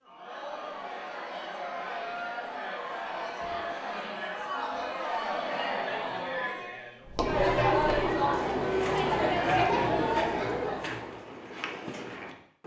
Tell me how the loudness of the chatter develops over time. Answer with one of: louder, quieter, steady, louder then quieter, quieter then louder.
louder.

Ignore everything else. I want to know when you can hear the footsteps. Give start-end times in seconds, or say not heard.
7.0-12.6.